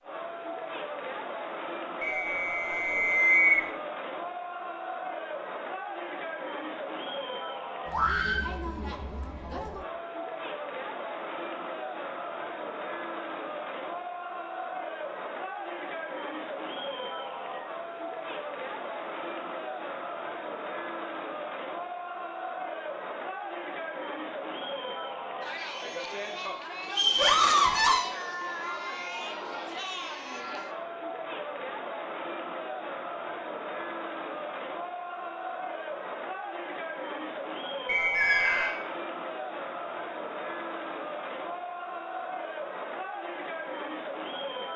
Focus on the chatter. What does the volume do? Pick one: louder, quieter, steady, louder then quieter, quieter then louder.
steady.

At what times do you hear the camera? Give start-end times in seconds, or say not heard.
not heard.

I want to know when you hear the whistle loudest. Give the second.
3 s.